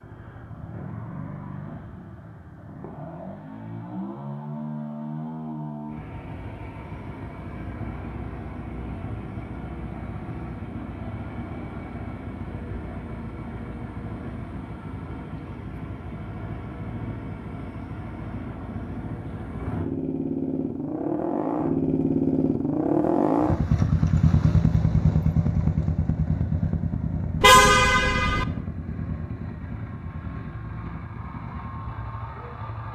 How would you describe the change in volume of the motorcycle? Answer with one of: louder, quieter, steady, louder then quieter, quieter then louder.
louder then quieter.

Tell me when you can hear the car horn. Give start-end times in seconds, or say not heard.
27.4-28.4.